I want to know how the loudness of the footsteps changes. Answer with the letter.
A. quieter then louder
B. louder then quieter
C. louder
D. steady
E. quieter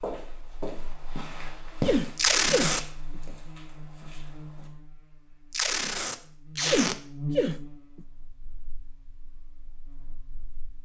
B.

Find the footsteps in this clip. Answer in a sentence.
You can hear the footsteps from 0.0 to 4.7 s.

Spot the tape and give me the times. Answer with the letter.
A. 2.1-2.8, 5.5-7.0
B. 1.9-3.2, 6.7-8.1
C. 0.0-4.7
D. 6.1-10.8
A.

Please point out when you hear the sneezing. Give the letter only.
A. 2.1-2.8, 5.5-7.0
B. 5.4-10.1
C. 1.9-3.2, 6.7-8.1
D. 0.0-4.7
C.